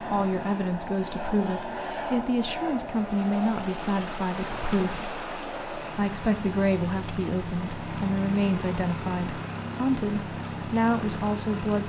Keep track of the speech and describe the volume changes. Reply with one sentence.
The volume of the speech stays about the same.